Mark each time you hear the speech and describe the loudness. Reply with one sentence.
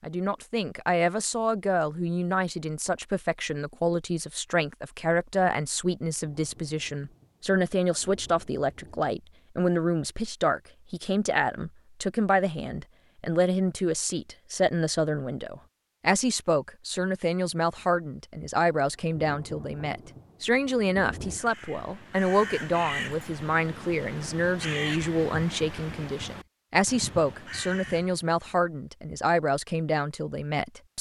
You can hear the speech from 0.0 to 30.9 s, at a steady volume.